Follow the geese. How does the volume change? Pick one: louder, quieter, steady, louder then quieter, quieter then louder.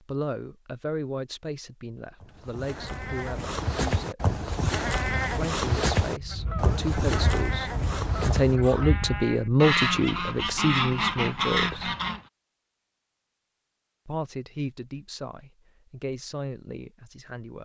louder.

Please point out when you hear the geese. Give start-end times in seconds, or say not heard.
6.2-12.2.